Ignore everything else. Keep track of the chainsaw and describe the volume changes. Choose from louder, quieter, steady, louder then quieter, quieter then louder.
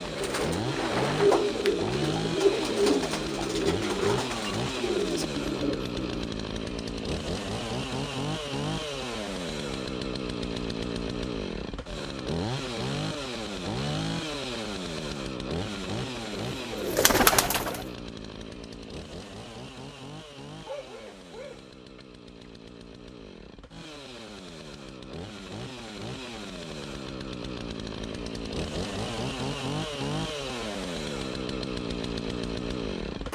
quieter then louder.